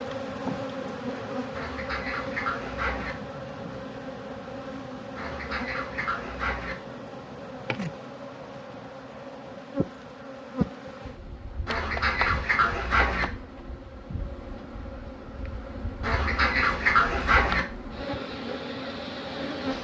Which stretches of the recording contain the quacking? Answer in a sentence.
The quacking can be heard from 1.5 to 3.1 s, from 5.2 to 6.8 s, from 11.7 to 13.2 s and from 16.0 to 17.6 s.